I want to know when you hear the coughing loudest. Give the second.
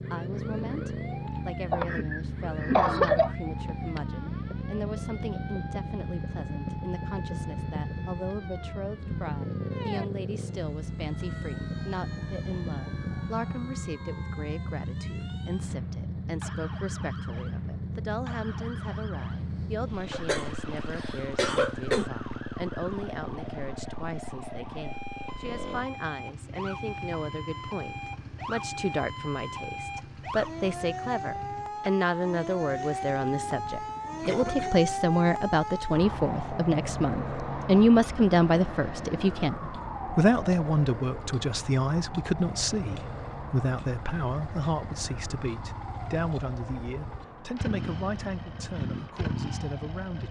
3 s.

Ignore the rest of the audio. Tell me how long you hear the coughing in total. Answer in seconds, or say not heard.
4 s.